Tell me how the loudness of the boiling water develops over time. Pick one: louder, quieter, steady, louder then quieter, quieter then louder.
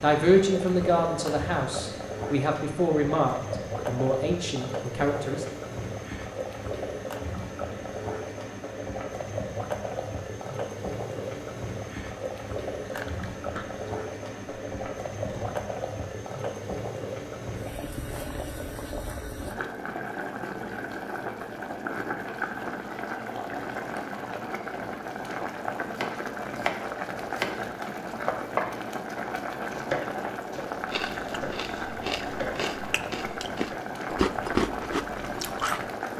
steady.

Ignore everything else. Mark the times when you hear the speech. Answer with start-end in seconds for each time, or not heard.
0.0-5.5.